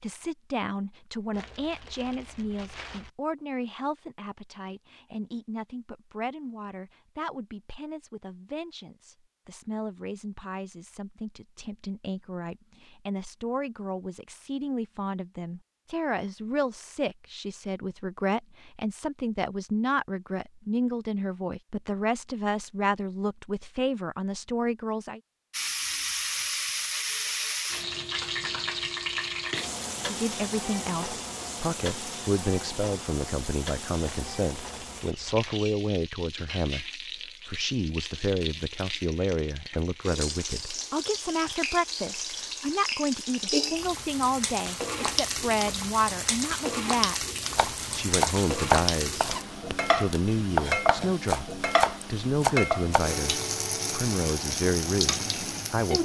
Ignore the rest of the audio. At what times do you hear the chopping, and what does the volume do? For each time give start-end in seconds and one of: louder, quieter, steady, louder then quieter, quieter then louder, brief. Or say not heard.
47.5-53.0 quieter then louder.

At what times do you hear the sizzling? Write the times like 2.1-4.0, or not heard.
25.5-55.9.